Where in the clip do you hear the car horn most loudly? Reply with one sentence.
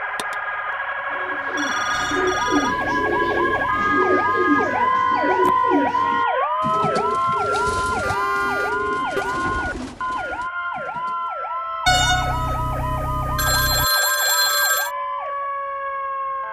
The volume of the car horn peaks at 12 seconds.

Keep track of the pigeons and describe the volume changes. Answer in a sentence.
The loudness of the pigeons goes down.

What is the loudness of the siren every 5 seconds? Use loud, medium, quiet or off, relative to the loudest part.
loud, loud, medium, medium.